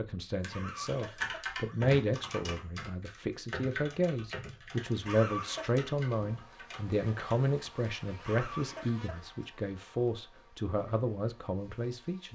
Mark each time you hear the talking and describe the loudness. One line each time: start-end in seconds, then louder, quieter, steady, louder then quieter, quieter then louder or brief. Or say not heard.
0.0-12.3 steady.